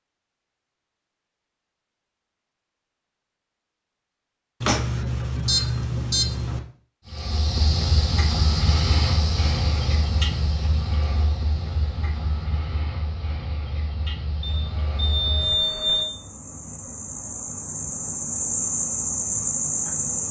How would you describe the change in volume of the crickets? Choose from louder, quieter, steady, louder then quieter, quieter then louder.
quieter then louder.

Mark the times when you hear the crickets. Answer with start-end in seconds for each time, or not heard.
7.0-20.2.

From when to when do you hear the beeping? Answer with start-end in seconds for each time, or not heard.
4.6-6.6, 14.4-16.1.